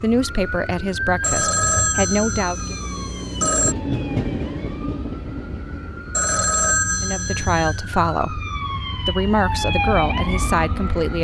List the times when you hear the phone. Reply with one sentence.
The phone can be heard from 1.2 to 3.8 s and from 6.1 to 7.8 s.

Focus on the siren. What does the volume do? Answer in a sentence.
The loudness of the siren goes down, then up.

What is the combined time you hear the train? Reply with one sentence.
The train can be heard for 9 seconds in total.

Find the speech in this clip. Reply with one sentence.
The speech can be heard from 0.0 to 2.8 s, from 7.0 to 8.4 s and from 9.1 to 11.1 s.